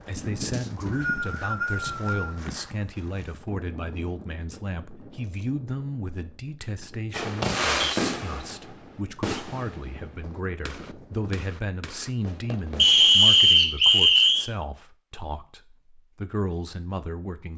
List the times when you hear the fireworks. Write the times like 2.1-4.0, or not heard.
7.1-12.8.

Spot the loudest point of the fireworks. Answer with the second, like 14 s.
8 s.